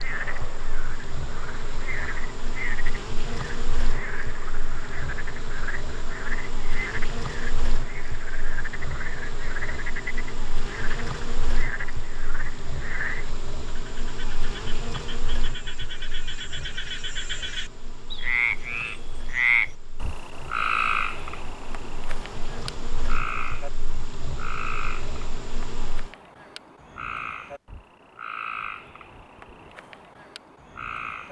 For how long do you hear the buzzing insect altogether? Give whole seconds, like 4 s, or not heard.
26 s.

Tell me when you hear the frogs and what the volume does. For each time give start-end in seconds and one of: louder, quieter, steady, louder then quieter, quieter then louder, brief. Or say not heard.
0.0-31.2 louder then quieter.